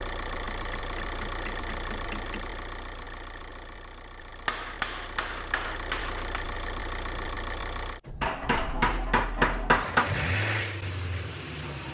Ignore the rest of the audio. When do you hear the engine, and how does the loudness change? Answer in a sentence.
You can hear the engine from 0.0 to 11.9 s, getting quieter then louder.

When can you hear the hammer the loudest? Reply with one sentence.
The loudest moment of the hammer is at 10 seconds.